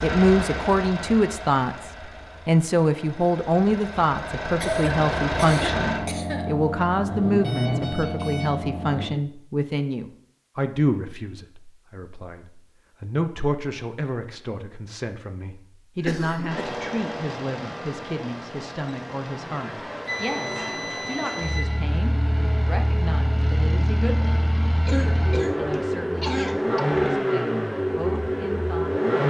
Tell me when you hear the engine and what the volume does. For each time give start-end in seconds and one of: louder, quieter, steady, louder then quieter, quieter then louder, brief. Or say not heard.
0.0-9.1 quieter then louder
16.4-29.2 louder.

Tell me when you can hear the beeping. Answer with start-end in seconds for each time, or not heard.
7.4-8.5, 20.1-21.7.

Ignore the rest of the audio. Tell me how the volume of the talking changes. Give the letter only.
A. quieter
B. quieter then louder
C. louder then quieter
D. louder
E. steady
A.